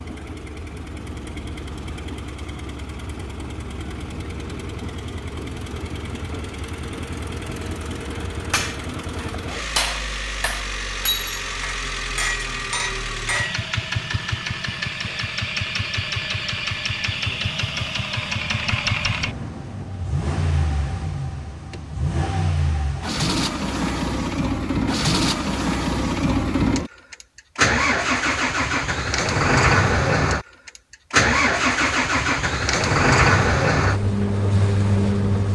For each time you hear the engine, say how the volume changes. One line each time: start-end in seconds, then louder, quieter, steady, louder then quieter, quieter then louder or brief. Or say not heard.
0.0-35.5 louder.